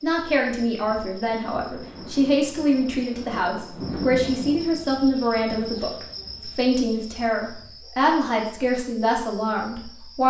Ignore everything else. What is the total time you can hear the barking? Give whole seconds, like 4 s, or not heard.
not heard.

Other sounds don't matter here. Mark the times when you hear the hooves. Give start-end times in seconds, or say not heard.
not heard.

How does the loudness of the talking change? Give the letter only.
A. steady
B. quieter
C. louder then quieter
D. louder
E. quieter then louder
A.